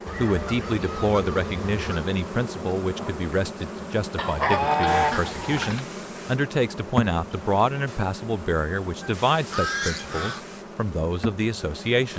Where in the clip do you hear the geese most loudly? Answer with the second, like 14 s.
5 s.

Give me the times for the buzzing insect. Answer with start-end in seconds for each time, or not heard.
0.0-12.1.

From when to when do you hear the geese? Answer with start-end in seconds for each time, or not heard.
0.1-2.1, 4.2-5.8, 9.0-10.4.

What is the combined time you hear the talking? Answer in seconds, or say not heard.
12 s.